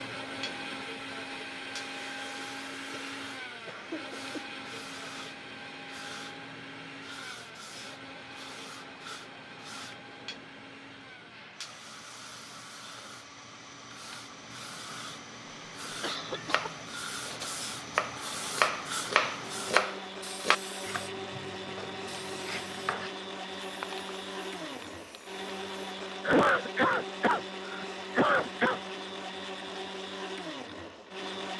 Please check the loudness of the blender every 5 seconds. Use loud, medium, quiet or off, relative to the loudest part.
loud, medium, medium, medium, loud, loud, loud.